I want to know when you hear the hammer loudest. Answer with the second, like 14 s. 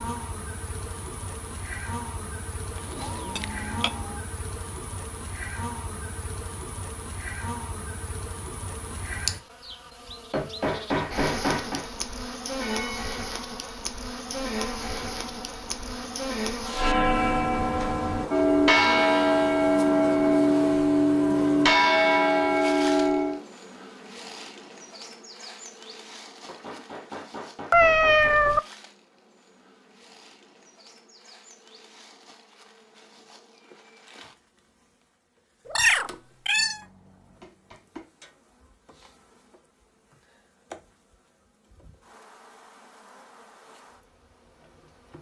11 s.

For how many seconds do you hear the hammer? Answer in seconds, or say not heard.
5 s.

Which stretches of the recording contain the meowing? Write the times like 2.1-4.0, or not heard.
2.8-4.2, 27.7-28.6, 35.6-36.8.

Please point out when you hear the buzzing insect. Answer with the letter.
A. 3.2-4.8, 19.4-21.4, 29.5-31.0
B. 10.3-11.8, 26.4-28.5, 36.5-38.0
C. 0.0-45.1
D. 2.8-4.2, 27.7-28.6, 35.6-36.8
C.